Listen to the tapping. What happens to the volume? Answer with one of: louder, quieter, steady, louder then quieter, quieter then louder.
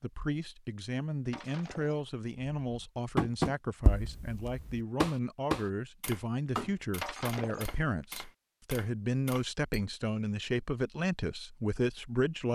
louder then quieter.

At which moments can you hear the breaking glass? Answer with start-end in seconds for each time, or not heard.
1.3-2.0, 7.0-8.1.